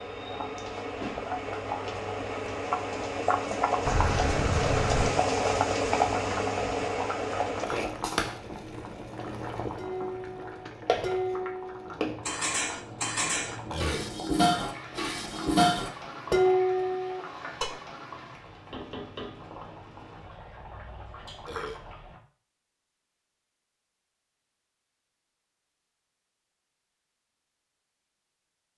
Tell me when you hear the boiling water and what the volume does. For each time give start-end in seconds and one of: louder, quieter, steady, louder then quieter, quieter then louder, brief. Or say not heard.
0.0-22.2 quieter.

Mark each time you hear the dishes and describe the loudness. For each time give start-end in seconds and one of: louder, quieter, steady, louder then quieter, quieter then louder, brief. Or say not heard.
9.8-17.7 louder.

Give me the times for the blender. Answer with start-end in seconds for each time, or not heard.
not heard.